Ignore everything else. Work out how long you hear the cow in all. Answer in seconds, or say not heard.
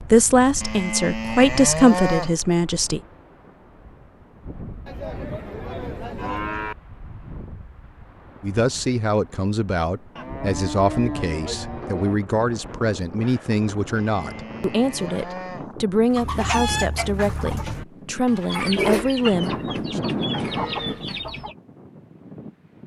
8 s.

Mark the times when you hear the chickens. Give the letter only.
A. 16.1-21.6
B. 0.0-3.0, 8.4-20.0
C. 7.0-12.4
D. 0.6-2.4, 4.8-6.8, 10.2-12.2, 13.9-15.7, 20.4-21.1
A.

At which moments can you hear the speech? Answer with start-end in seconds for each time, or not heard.
0.0-3.0, 8.4-20.0.